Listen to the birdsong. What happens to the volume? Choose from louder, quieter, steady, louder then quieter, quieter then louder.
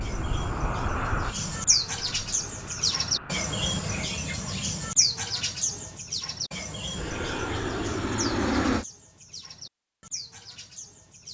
quieter.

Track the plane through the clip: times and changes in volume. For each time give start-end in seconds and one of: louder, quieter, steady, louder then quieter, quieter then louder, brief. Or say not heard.
0.0-4.1 quieter
6.9-8.8 brief.